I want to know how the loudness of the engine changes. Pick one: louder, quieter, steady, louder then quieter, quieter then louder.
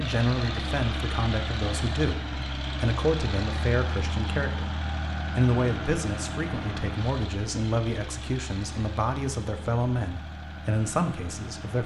quieter.